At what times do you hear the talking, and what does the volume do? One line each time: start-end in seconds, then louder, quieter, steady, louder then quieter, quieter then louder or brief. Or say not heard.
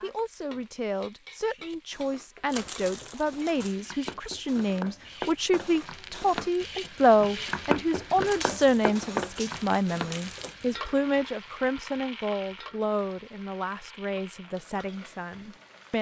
0.0-15.9 louder then quieter.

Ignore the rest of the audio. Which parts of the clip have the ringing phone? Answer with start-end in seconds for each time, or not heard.
not heard.